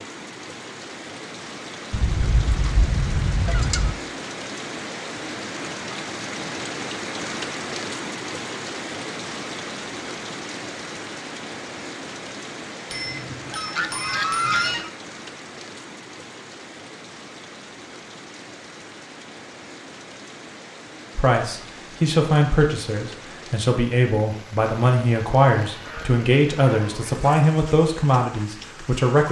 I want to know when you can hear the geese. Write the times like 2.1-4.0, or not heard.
1.9-4.0, 13.3-14.9, 25.6-27.3.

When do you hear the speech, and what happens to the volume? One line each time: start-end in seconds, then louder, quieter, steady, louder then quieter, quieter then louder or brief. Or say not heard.
21.1-29.2 steady.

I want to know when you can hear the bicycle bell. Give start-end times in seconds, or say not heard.
12.8-14.8.